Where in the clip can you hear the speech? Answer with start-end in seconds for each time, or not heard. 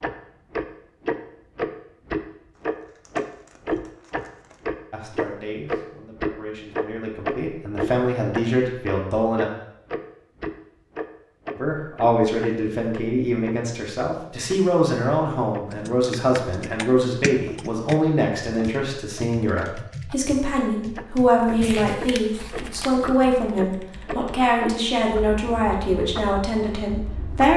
4.9-9.4, 11.6-27.5.